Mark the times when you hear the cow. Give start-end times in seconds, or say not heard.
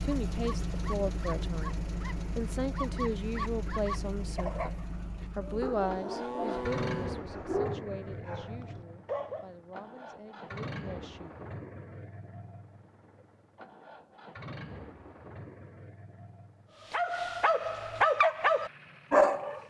5.4-7.2.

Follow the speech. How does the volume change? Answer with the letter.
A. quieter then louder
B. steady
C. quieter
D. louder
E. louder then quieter
C.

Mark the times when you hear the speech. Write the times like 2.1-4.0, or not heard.
0.0-4.8, 5.3-11.3.